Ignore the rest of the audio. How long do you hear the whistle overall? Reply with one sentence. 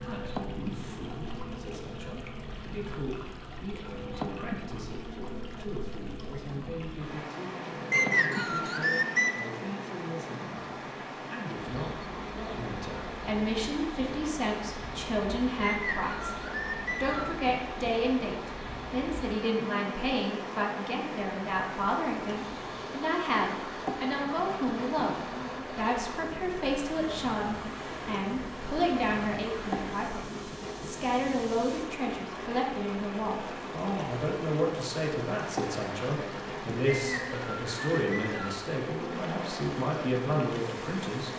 The whistle can be heard for 5 seconds in total.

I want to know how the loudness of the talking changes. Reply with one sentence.
The loudness of the talking goes up.